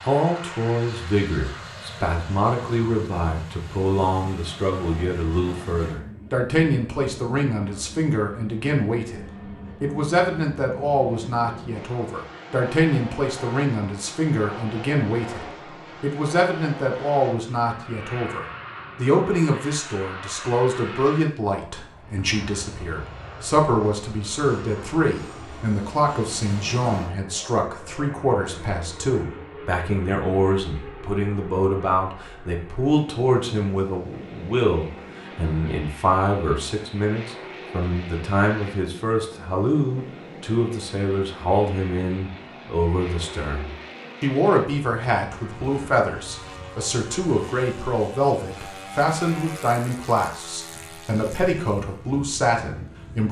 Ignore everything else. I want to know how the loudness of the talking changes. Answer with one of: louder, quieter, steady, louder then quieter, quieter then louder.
steady.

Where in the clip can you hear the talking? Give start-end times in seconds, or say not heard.
0.0-53.2.